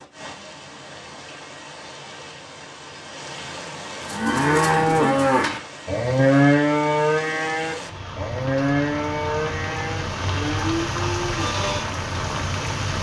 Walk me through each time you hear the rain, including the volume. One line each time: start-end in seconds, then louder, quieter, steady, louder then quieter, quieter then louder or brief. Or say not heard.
0.0-12.9 louder.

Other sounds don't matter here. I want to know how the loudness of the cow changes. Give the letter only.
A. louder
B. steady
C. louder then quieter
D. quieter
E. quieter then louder
D.